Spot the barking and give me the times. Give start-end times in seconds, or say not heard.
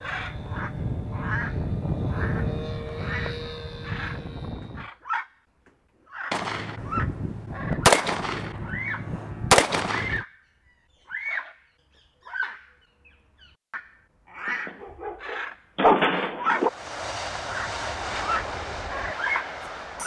14.4-16.7.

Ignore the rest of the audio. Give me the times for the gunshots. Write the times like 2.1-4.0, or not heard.
6.3-10.2.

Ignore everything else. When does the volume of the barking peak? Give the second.
16 s.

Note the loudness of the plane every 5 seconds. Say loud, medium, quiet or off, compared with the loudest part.
loud, off, off, loud.